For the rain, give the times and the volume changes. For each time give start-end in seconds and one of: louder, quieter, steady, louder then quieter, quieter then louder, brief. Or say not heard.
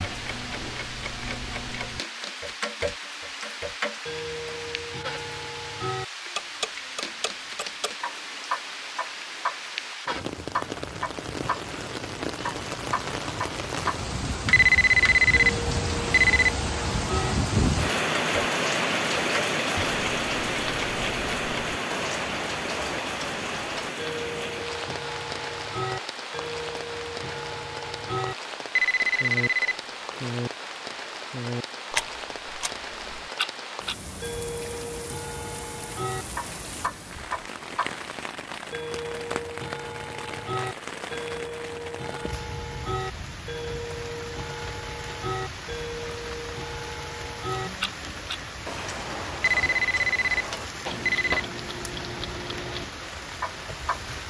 0.0-54.2 louder then quieter.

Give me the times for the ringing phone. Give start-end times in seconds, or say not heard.
14.5-16.5, 28.8-30.3, 49.4-51.4.